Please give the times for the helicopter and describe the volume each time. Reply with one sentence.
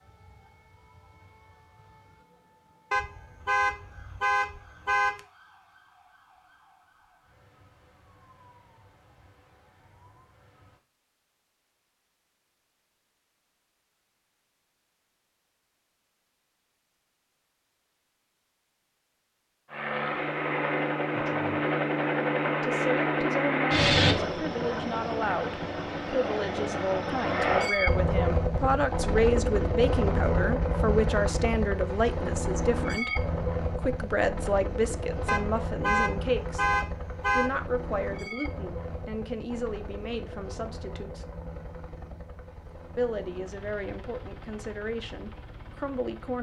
The helicopter can be heard from 19.7 to 46.3 s, getting quieter.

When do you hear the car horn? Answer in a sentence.
You can hear the car horn from 2.9 to 5.2 s and from 35.2 to 37.5 s.